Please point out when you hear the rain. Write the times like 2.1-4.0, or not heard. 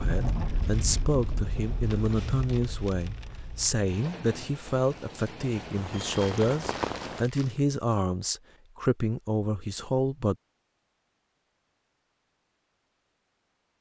0.0-7.2.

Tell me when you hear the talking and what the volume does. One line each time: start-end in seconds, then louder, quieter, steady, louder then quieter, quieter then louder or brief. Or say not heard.
0.0-10.3 steady.